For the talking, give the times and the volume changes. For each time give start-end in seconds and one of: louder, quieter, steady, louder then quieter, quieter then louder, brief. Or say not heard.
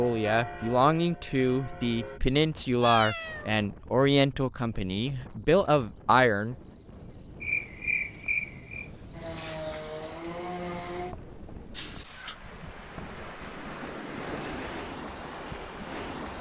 0.0-6.5 steady.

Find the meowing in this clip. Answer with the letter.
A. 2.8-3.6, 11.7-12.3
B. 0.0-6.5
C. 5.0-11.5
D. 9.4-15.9
A.